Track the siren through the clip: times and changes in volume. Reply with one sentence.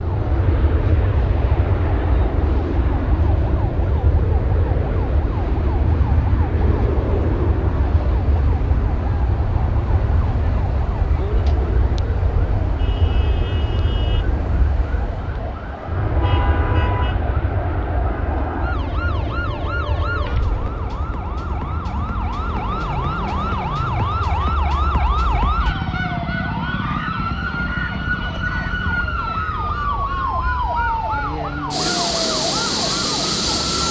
You can hear the siren from 0.0 to 33.8 s, getting louder.